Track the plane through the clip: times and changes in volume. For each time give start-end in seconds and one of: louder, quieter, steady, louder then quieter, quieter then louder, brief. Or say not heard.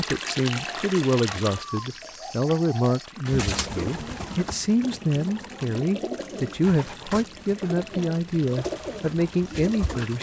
not heard.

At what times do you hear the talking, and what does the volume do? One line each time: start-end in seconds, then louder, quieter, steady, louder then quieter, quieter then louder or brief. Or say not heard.
0.0-10.1 steady.